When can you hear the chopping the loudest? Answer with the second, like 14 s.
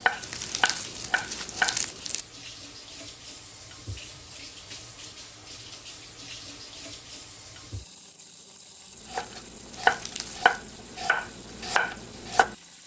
10 s.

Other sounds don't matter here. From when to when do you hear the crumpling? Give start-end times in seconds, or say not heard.
0.2-2.2, 9.7-10.6.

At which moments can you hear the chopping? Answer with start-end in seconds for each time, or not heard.
0.0-1.8, 9.1-12.6.